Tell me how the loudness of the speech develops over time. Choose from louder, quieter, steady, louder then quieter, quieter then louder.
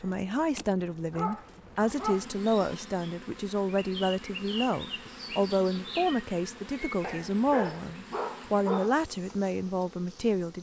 steady.